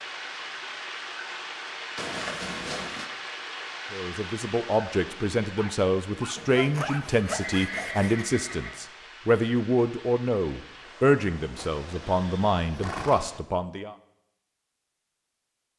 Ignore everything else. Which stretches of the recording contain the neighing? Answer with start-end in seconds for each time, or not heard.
1.9-3.1, 7.2-8.8, 11.6-13.4.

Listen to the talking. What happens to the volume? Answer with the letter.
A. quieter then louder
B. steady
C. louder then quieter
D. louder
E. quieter
B.